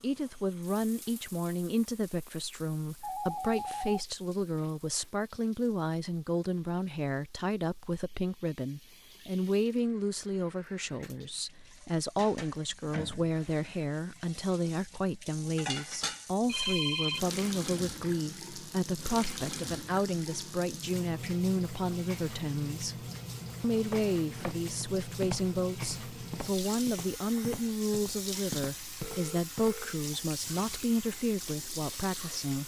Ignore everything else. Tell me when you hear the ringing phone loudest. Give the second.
17 s.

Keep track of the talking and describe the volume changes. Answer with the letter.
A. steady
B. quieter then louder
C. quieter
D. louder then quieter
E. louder
A.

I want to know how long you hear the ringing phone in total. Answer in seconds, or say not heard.
3 s.